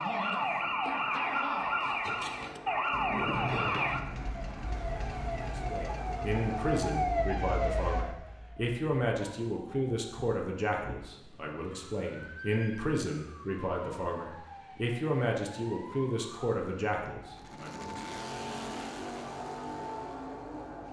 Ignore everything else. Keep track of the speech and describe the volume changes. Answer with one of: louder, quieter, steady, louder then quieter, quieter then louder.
steady.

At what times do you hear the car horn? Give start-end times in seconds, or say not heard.
not heard.